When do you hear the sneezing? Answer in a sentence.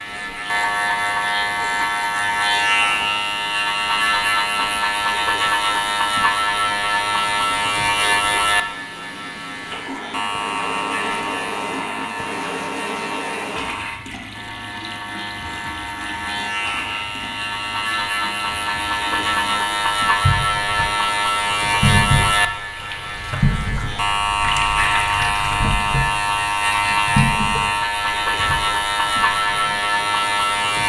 The sneezing can't be heard in this clip.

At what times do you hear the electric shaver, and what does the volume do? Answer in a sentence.
You can hear the electric shaver from 0.0 to 30.8 s, getting quieter then louder.